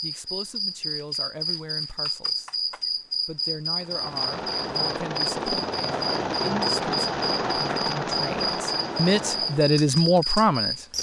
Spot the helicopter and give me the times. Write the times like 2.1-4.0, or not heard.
3.8-9.8.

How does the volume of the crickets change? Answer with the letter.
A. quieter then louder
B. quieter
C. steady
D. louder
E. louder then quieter
C.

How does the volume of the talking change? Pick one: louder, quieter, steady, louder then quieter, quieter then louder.
louder.